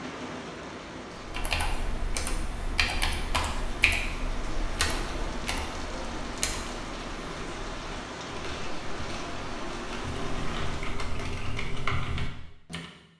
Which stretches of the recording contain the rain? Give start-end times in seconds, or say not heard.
0.0-11.2.